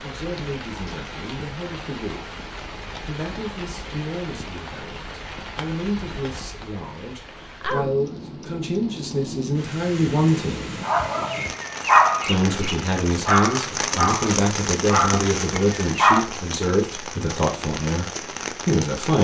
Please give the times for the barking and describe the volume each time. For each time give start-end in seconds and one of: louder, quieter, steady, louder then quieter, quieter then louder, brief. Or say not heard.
10.8-16.2 quieter then louder.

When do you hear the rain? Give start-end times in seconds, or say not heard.
0.0-19.1.